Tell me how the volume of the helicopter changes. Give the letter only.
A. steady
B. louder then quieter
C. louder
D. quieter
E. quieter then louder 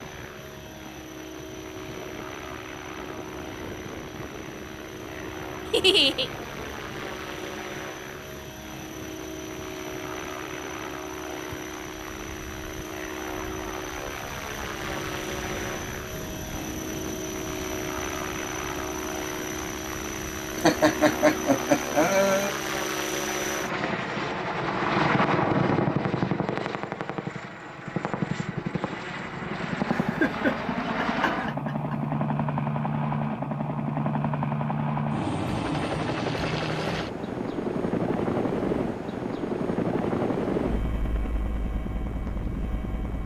C.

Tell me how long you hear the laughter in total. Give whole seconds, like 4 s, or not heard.
5 s.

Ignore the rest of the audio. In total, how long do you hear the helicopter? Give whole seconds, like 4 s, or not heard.
43 s.